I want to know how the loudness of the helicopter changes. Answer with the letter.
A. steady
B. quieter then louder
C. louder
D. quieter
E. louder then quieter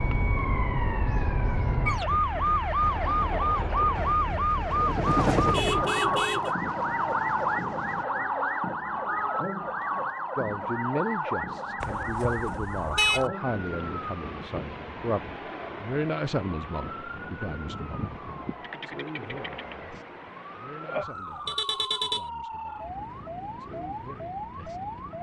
E.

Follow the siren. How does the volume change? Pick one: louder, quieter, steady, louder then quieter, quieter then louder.
quieter.